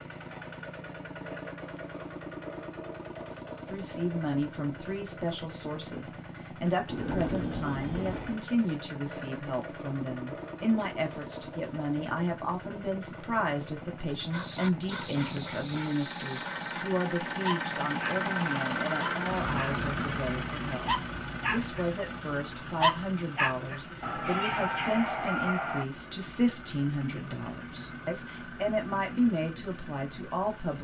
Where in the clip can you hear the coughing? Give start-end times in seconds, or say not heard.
not heard.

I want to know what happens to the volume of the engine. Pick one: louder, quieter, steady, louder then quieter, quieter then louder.
louder then quieter.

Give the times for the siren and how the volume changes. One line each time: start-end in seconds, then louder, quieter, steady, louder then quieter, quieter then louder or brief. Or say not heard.
not heard.